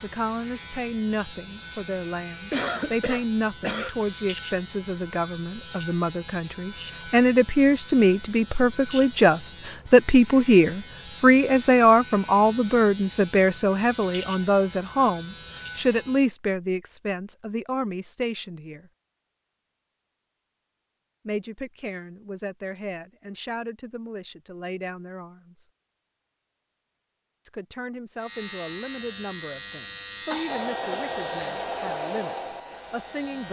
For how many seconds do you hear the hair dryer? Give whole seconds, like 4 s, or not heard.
3 s.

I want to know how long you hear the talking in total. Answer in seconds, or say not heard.
29 s.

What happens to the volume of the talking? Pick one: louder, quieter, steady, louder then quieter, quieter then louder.
louder then quieter.